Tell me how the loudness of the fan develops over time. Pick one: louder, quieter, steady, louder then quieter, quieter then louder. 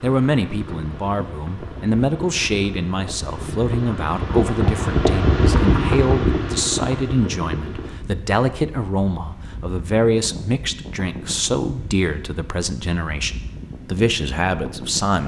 louder then quieter.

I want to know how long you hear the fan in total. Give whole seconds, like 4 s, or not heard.
15 s.